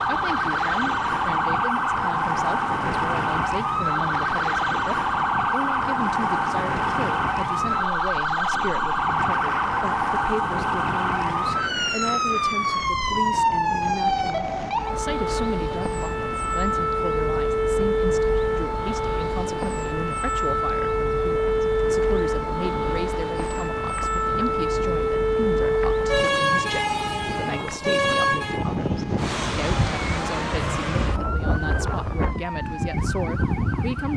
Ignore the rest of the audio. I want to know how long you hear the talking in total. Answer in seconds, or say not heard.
34 s.